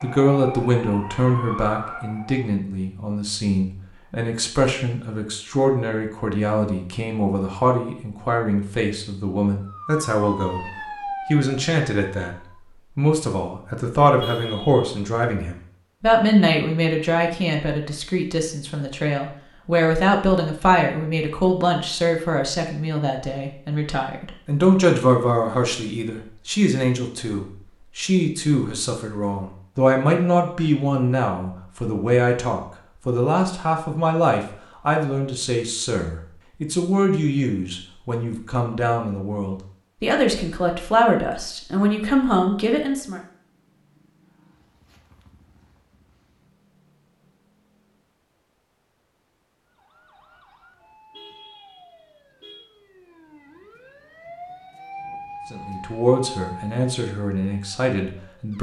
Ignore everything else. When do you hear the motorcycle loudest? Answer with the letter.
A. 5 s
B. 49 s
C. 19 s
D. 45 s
D.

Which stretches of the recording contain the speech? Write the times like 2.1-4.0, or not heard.
0.0-10.7, 11.3-12.3, 12.9-43.2, 55.5-58.5.